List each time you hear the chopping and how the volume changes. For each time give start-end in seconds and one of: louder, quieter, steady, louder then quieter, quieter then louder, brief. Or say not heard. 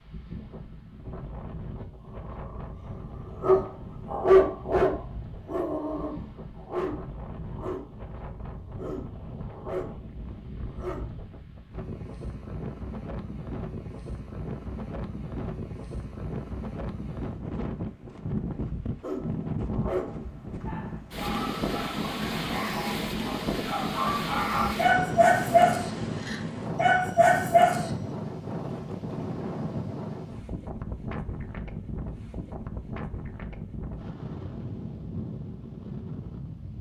not heard.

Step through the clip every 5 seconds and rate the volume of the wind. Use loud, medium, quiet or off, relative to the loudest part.
medium, medium, medium, loud, loud, loud, medium, medium.